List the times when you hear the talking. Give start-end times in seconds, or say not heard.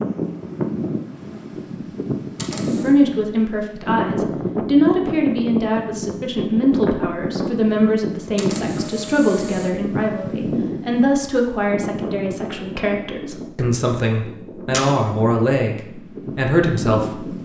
2.8-17.4.